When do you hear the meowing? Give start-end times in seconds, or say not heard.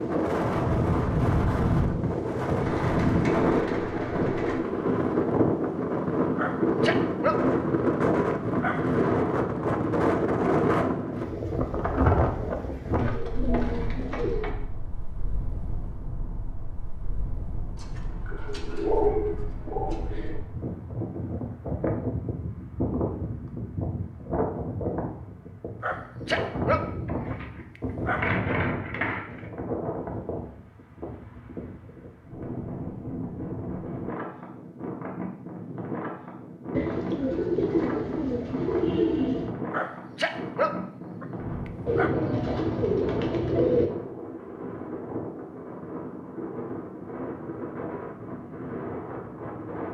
not heard.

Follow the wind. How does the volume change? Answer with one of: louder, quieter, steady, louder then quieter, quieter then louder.
quieter.